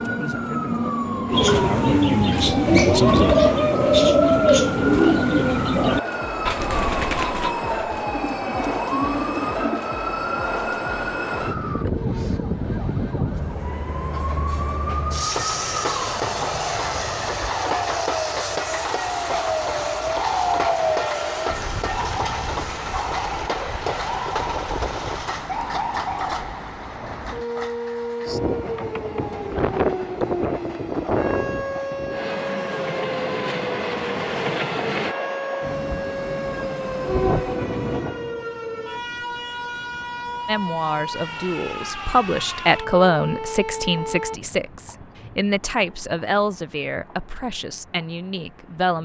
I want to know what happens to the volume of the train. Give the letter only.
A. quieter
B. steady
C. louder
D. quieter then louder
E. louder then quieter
A.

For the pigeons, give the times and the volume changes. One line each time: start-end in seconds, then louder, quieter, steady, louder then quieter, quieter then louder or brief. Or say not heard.
1.3-9.8 quieter.